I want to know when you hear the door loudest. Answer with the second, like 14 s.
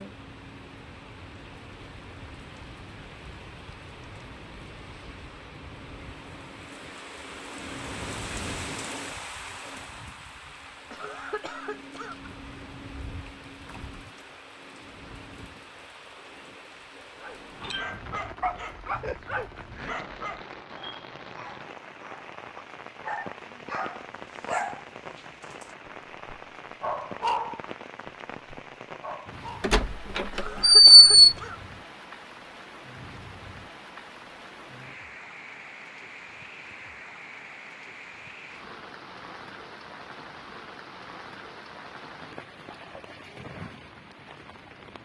31 s.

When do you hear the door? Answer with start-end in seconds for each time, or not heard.
29.6-31.1.